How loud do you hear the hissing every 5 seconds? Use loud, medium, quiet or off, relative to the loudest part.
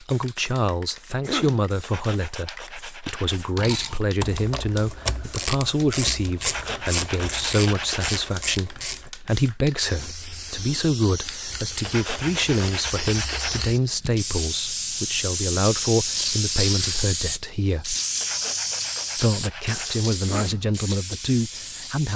quiet, quiet, medium, loud, medium.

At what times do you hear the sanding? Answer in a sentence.
You can hear the sanding from 1.8 to 3.5 s, from 6.4 to 8.3 s, from 11.8 to 13.7 s and from 18.2 to 20.1 s.